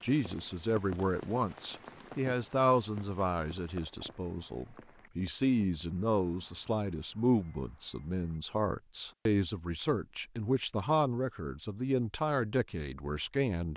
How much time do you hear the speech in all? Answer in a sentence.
The speech can be heard for 14 seconds in total.